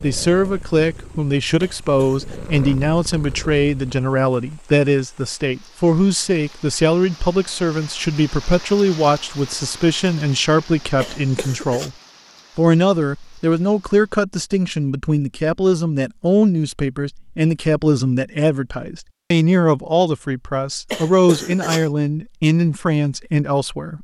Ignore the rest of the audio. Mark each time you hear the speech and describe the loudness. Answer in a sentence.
You can hear the speech from 0.0 to 11.9 s, at a steady volume; and from 12.6 to 23.9 s, at a steady volume.